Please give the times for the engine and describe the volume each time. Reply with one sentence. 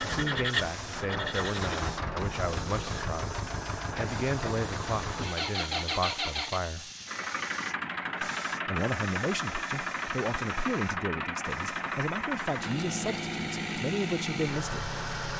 The engine can be heard from 0.0 to 15.3 s, at a steady volume.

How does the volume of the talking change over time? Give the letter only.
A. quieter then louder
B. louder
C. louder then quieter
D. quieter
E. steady
E.